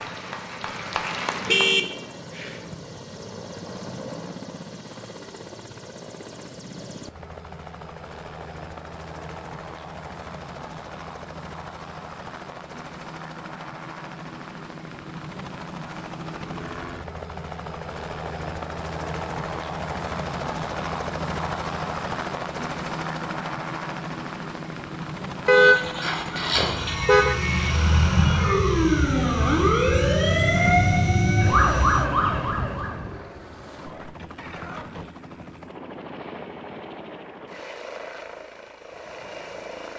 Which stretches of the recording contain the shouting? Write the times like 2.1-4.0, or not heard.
not heard.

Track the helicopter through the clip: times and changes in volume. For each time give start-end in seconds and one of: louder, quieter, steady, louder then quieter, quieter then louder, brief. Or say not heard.
0.0-39.9 louder then quieter.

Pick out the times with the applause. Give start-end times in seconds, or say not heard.
0.0-1.8.